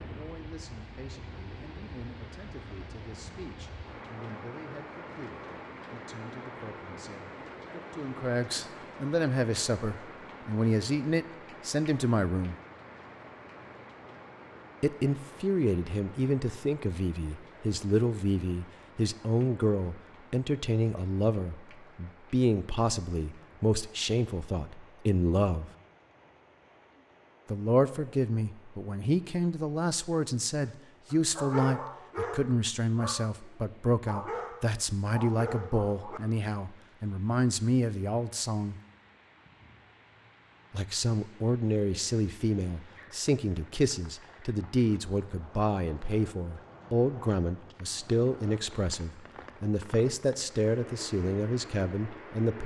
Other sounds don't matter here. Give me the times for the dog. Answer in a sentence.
You can hear the dog from 30.6 to 36.4 s.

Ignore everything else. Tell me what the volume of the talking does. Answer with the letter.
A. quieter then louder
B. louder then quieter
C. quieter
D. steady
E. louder
E.